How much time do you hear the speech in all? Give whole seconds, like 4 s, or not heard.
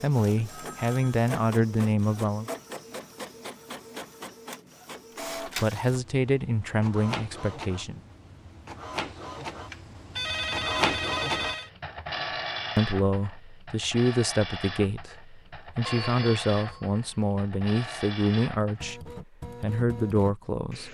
13 s.